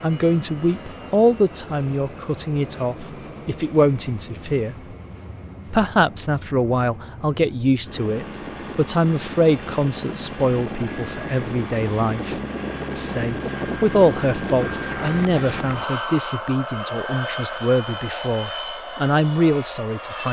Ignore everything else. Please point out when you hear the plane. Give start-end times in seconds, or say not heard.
0.0-20.2.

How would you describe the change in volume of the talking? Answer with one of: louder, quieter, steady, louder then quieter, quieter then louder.
steady.